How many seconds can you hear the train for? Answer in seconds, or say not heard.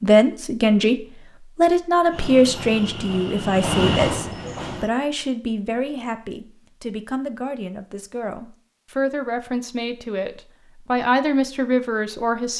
3 s.